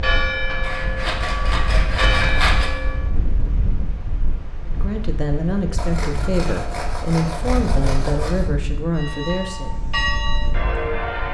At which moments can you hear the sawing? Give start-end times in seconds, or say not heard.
0.6-2.7, 5.8-8.5.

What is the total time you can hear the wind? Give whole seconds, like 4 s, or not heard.
11 s.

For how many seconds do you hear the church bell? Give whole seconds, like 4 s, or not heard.
5 s.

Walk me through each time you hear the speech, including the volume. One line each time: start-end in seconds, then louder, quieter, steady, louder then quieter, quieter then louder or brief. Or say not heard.
4.7-9.8 steady.